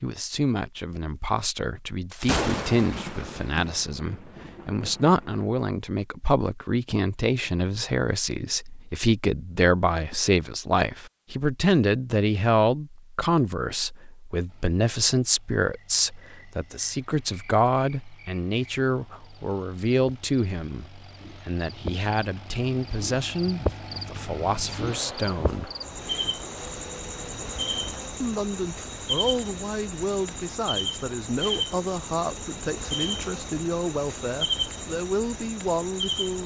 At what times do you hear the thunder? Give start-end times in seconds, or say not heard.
2.1-5.5.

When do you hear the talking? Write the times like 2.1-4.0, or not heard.
0.0-25.7, 28.2-36.4.